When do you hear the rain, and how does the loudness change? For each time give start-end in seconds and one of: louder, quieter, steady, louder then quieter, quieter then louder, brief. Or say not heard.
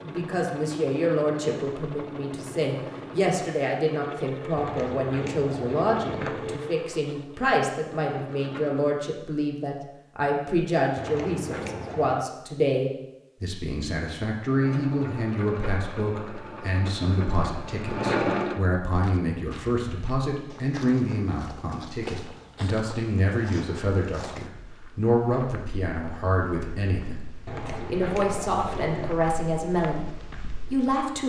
not heard.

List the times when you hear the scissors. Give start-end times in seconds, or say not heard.
4.5-6.6, 10.9-12.2, 27.4-29.1.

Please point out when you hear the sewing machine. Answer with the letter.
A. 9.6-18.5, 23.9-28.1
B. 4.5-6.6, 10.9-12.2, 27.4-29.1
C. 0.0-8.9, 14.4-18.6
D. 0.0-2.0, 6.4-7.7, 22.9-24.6
C.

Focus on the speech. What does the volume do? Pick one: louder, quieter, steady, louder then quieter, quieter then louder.
steady.